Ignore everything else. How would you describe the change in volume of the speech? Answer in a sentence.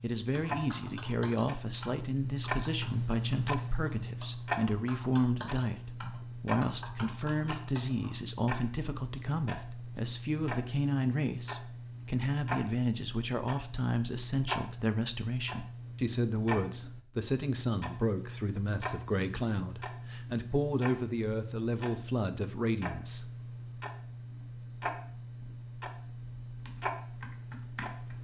The volume of the speech stays about the same.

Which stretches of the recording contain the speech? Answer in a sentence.
The speech can be heard from 0.0 to 23.2 s.